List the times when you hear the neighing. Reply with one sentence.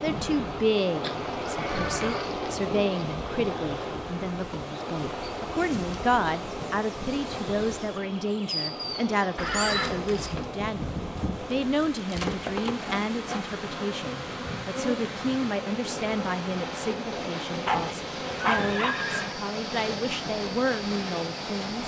You can hear the neighing from 1.4 to 2.2 s, from 9.3 to 10.4 s and from 18.4 to 19.3 s.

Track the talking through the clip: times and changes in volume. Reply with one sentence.
The talking can be heard from 0.0 to 21.8 s, at a steady volume.